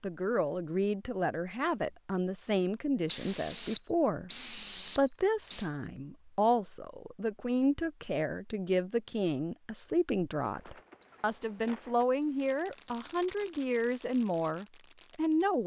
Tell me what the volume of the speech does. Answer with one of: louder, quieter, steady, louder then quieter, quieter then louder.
steady.